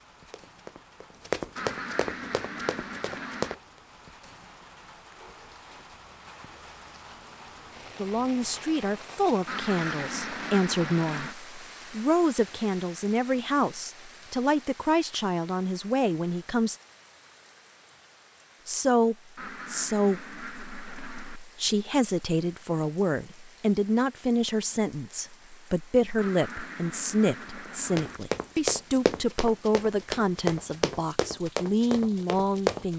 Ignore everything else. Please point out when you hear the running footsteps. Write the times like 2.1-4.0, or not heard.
0.2-3.5, 27.6-32.9.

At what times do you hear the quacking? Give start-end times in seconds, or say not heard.
1.6-3.5, 9.4-11.3, 19.4-21.4, 26.1-28.2.